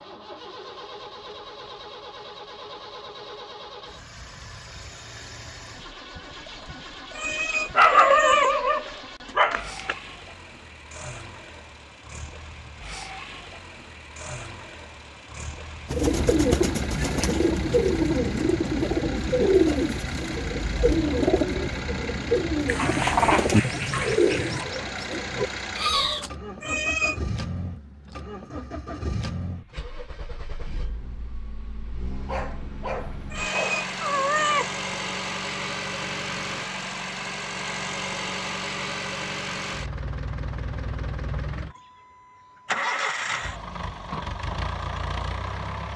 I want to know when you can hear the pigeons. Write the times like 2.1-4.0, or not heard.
15.9-26.3.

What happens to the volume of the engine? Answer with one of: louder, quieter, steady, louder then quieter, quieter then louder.
louder.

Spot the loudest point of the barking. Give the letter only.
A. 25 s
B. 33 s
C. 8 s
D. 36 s
C.